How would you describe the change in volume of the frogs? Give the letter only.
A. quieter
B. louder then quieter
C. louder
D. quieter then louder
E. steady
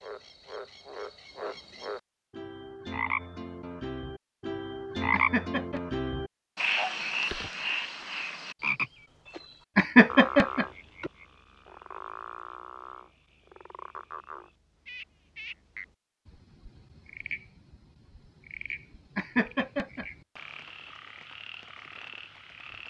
B.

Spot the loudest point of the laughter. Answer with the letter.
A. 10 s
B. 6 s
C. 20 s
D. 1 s
A.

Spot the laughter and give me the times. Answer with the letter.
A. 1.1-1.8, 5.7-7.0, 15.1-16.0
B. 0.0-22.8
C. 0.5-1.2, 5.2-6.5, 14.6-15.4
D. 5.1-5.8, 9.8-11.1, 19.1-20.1
D.